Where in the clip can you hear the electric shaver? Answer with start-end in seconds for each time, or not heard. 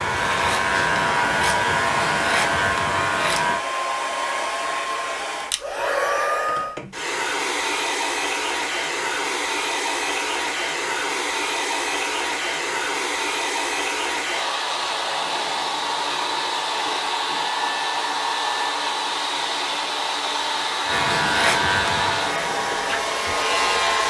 0.0-3.6, 20.9-24.0.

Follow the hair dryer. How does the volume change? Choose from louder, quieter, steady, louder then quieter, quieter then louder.
steady.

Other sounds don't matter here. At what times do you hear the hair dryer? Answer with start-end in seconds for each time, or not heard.
0.0-24.0.